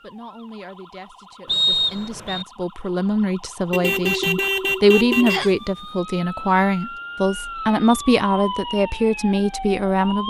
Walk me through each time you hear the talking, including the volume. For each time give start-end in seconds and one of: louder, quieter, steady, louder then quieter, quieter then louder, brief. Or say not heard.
0.0-10.2 louder.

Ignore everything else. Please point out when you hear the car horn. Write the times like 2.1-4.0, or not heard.
3.7-5.5.